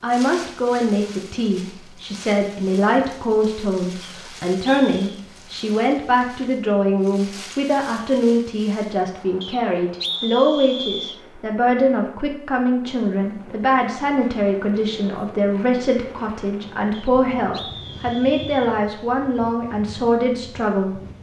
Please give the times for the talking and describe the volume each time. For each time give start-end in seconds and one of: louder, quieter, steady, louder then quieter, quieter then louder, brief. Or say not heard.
0.0-21.0 steady.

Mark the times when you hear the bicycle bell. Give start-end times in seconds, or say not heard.
not heard.